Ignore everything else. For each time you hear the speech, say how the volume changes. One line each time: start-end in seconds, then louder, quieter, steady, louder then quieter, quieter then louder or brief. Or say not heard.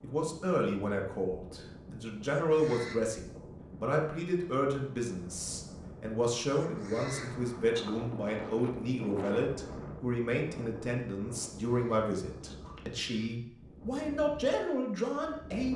0.0-15.7 steady.